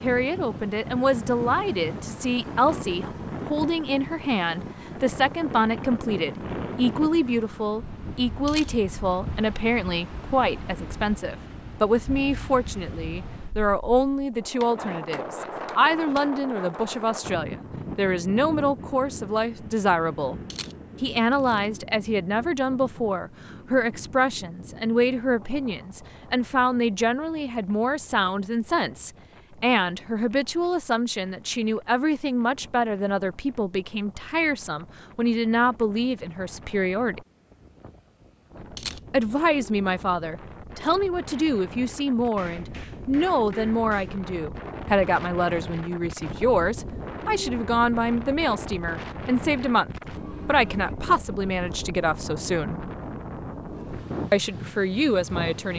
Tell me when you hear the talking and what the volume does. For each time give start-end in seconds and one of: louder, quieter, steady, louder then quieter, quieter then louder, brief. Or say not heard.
0.0-20.4 steady
21.0-37.2 steady
39.1-52.8 steady
54.3-55.7 brief.